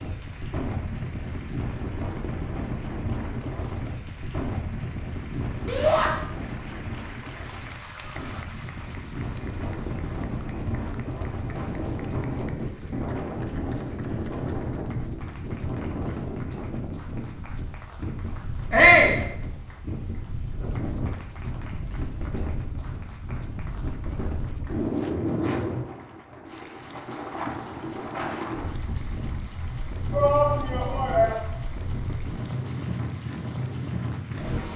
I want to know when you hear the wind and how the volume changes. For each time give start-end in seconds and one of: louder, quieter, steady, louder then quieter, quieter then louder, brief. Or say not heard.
0.0-34.7 steady.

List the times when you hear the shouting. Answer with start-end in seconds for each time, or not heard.
5.7-6.1, 18.7-19.1, 30.1-31.4.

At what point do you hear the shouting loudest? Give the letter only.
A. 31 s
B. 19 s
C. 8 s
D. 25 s
B.